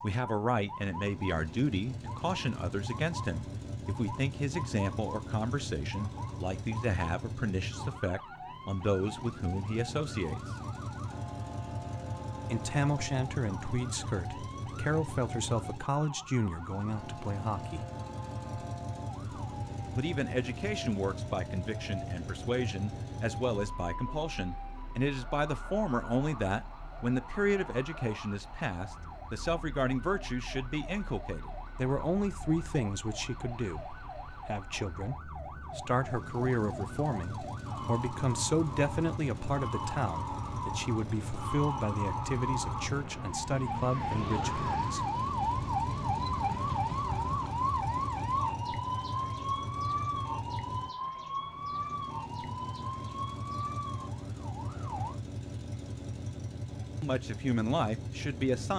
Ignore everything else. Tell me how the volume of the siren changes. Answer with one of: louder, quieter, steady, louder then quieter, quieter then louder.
louder.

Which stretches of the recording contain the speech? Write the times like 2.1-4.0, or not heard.
0.0-10.4, 12.4-17.9, 19.9-45.1, 57.0-58.7.